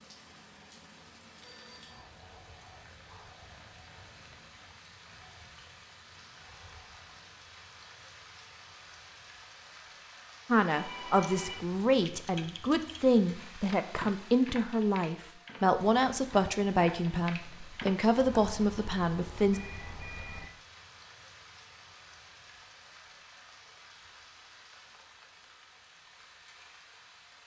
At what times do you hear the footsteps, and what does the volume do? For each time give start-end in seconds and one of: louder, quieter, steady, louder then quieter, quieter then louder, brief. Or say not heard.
not heard.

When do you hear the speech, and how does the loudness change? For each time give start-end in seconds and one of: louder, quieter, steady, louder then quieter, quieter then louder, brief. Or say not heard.
10.5-19.6 steady.